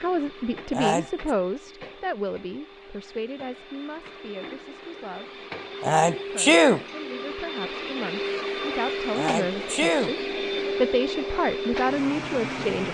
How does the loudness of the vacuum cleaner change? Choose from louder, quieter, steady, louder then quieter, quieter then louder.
louder.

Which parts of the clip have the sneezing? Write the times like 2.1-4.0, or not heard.
0.7-1.3, 5.8-6.8, 9.1-10.2.